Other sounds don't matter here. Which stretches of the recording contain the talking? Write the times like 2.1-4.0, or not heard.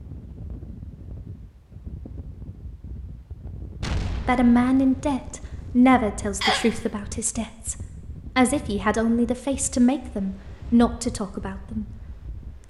4.2-7.8, 8.3-11.8.